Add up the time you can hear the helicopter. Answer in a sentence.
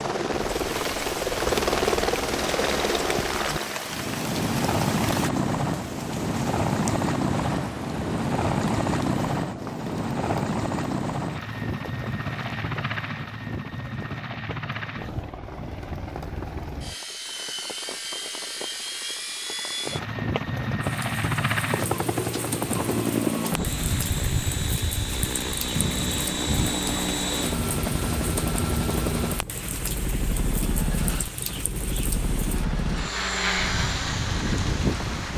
The helicopter can be heard for 35 seconds in total.